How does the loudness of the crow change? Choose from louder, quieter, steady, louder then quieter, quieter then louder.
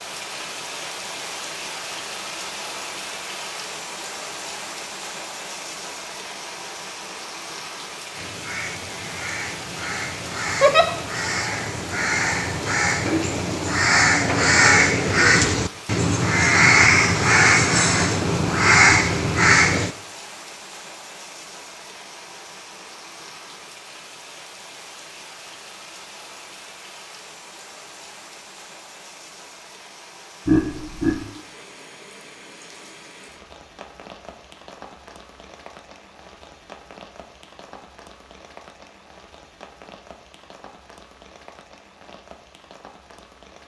louder.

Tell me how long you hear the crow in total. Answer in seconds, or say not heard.
12 s.